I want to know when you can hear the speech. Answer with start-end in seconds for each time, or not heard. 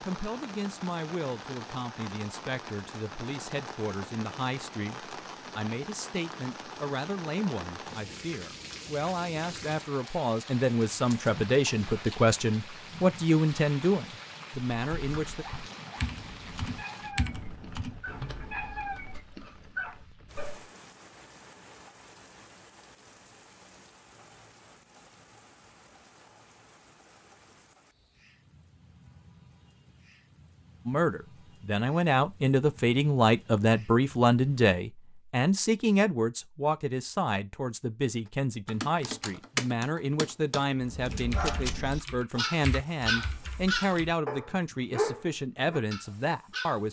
0.0-15.4, 30.9-46.8.